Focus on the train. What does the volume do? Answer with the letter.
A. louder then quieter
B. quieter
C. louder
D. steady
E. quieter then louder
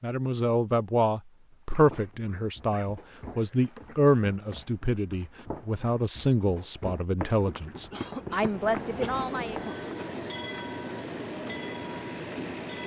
D.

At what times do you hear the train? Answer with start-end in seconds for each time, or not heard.
8.4-12.8.